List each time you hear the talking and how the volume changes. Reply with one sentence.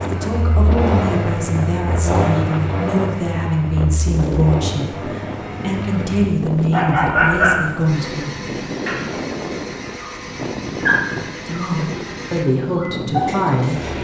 The talking can be heard from 0.0 to 8.3 s, at a steady volume; and briefly from 11.4 to 13.9 s.